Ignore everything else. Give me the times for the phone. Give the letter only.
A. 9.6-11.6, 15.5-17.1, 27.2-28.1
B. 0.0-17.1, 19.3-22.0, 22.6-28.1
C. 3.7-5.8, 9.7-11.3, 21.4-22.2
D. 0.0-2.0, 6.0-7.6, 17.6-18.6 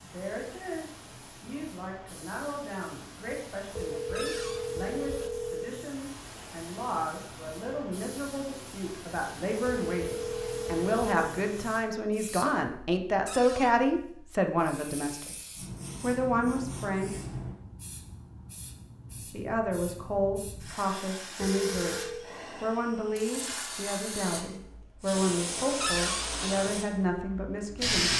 C.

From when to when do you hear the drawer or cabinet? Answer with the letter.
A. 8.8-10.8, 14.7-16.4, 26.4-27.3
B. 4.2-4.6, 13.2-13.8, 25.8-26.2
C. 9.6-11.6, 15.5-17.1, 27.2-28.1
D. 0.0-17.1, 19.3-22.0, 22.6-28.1
B.